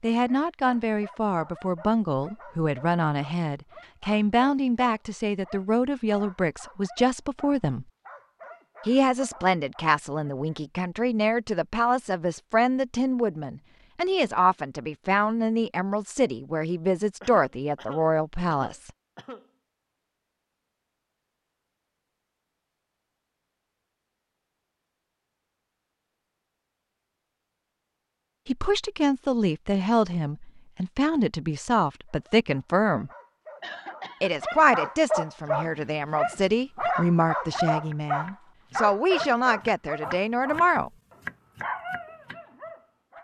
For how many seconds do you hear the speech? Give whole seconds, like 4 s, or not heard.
29 s.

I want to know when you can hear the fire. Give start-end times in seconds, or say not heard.
not heard.